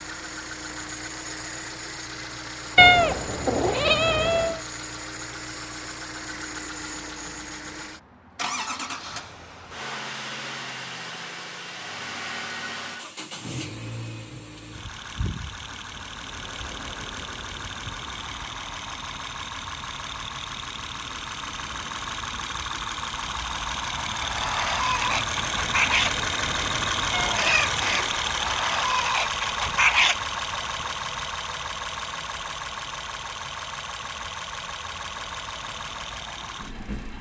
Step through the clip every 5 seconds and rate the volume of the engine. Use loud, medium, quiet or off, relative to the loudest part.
medium, medium, medium, medium, medium, loud, medium, medium.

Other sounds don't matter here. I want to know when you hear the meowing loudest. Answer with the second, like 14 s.
3 s.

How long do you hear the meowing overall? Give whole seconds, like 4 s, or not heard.
3 s.